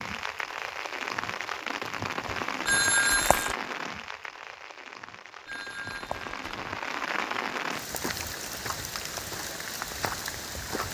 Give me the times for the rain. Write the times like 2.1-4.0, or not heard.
0.0-10.8.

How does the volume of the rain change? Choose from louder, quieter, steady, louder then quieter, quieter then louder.
quieter then louder.